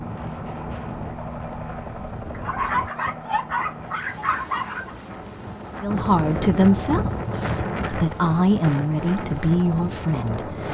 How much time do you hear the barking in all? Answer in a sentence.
You can hear the barking for 3 seconds altogether.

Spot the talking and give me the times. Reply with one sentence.
The talking can be heard from 5.8 to 10.6 s.